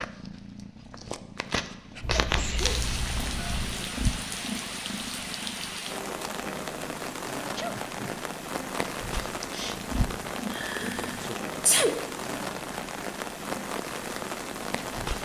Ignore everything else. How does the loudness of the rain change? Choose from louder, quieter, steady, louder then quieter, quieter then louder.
steady.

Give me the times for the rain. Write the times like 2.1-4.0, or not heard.
2.5-15.2.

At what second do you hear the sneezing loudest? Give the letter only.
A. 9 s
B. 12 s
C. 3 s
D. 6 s
B.